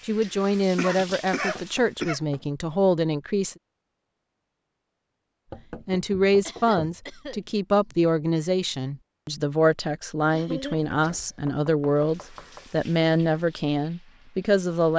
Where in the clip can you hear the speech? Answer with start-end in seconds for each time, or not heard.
0.1-3.5, 5.8-14.9.